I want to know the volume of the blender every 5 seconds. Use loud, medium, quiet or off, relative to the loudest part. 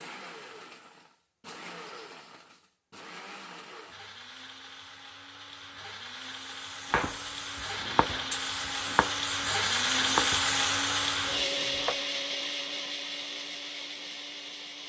quiet, loud, loud.